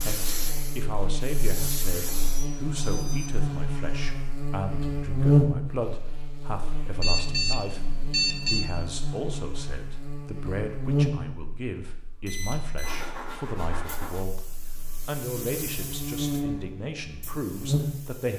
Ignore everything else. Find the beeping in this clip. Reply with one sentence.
The beeping can be heard from 2.2 to 3.4 s, from 7.0 to 8.7 s and from 12.2 to 13.1 s.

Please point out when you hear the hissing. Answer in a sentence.
You can hear the hissing from 0.0 to 2.5 s and from 13.8 to 18.3 s.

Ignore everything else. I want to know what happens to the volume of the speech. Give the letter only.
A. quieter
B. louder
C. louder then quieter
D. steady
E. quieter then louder
D.